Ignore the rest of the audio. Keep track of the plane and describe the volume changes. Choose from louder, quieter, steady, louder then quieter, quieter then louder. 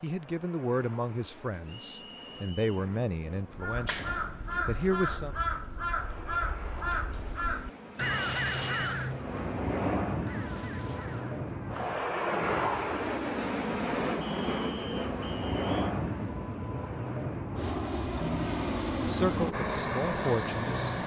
louder.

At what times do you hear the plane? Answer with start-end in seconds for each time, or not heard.
0.0-21.0.